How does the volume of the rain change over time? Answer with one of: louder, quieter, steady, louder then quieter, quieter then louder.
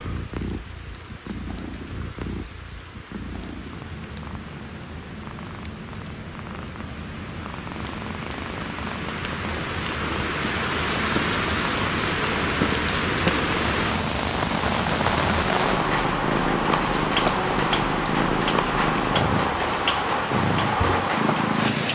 louder.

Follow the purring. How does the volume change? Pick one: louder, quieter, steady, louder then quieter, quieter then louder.
louder.